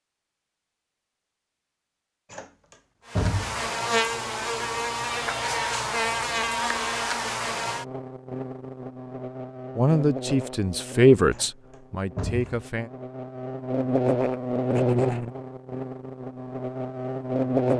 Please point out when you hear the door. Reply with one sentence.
You can hear the door from 2.3 to 3.7 s and from 11.3 to 12.7 s.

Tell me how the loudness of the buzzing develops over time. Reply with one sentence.
The volume of the buzzing goes down, then up.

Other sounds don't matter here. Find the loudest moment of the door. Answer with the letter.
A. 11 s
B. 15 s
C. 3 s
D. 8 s
C.